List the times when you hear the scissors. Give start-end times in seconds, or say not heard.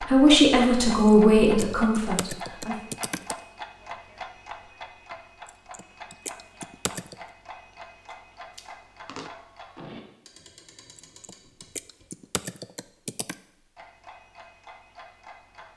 7.7-9.3.